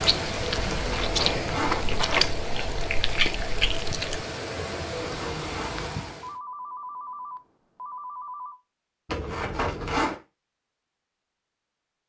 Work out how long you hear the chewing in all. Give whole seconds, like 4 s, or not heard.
4 s.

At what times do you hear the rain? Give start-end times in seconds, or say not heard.
0.0-6.3.